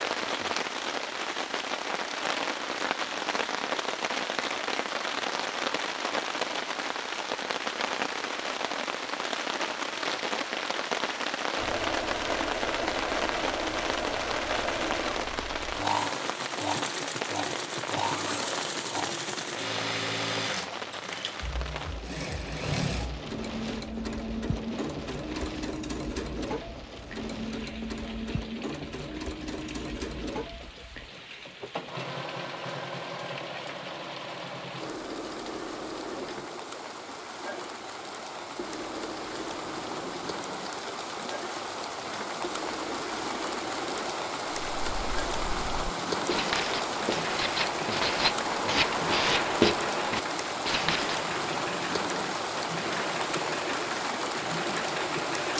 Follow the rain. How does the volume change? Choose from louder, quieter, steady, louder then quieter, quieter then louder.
quieter then louder.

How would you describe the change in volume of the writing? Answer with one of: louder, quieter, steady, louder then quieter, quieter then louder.
louder then quieter.